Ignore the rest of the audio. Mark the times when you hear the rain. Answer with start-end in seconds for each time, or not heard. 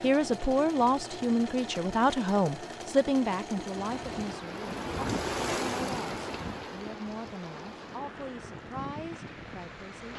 3.8-10.1.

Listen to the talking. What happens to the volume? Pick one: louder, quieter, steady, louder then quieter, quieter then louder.
quieter.